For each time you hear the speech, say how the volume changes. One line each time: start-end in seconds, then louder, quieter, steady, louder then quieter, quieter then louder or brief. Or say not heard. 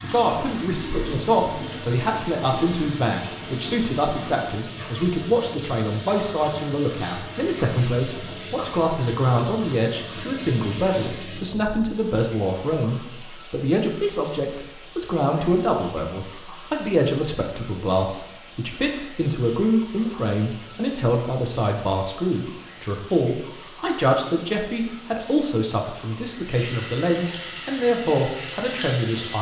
0.0-29.3 steady.